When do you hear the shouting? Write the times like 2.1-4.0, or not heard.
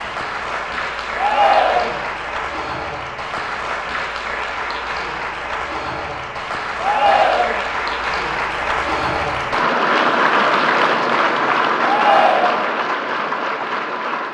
1.1-2.0, 6.8-7.7, 11.8-12.8.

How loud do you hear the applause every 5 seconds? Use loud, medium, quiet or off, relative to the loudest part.
medium, loud, loud.